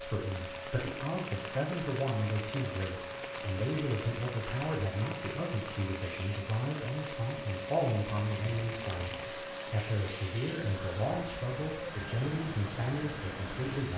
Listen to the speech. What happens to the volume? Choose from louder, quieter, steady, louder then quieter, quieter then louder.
steady.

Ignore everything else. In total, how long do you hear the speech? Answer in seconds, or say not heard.
14 s.